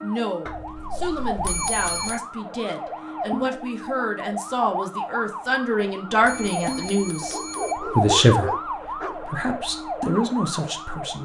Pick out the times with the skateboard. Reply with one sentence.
The skateboard can't be heard in this clip.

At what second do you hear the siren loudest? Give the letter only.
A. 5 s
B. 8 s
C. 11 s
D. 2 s
B.